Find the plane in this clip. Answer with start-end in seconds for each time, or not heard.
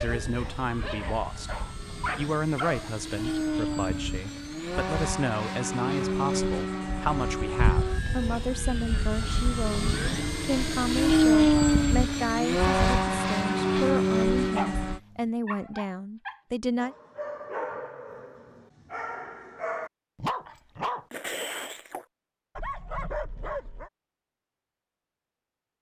0.0-15.0.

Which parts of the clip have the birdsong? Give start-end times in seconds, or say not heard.
not heard.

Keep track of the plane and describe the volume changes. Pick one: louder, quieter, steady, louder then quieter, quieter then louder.
louder.